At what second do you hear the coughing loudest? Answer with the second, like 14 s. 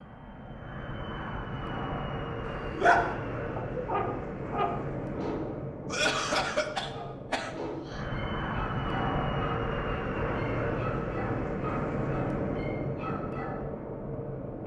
6 s.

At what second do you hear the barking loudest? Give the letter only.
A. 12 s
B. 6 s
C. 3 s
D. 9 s
C.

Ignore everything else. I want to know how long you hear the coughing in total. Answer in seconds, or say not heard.
2 s.